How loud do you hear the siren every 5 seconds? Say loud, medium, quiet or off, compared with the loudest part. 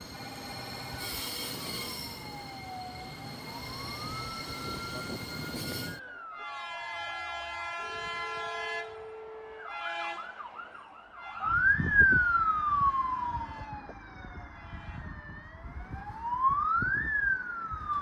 quiet, quiet, loud, loud.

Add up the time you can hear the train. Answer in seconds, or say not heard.
18 s.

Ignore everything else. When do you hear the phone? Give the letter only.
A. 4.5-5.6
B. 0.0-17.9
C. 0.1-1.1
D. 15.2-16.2
C.